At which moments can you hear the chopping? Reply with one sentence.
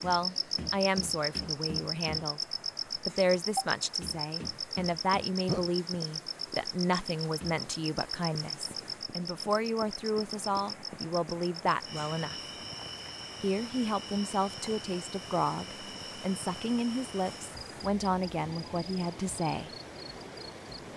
You can't hear the chopping here.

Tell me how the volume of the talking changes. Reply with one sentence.
The loudness of the talking stays about the same.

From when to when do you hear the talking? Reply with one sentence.
You can hear the talking from 0.0 to 12.3 s and from 13.4 to 19.7 s.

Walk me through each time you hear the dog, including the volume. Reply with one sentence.
You can't hear the dog here.